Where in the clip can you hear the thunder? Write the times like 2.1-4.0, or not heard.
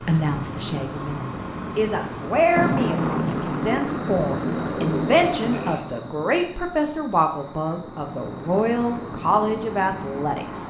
2.5-5.8.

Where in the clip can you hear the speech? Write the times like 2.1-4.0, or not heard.
0.1-10.6.